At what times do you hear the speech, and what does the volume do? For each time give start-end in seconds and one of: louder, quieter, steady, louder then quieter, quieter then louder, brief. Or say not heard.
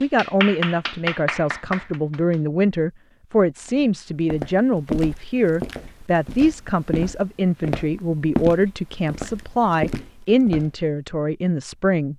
0.0-12.1 steady.